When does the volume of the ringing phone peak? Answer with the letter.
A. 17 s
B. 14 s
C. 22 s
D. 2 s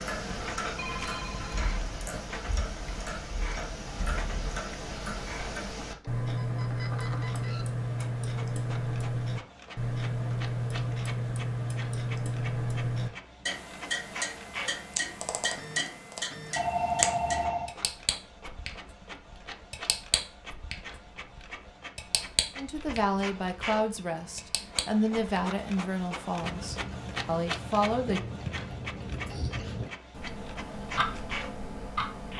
A.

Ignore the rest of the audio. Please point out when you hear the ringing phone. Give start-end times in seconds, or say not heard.
0.8-2.0, 16.6-17.8.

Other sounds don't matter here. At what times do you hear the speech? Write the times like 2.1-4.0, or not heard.
22.6-28.2.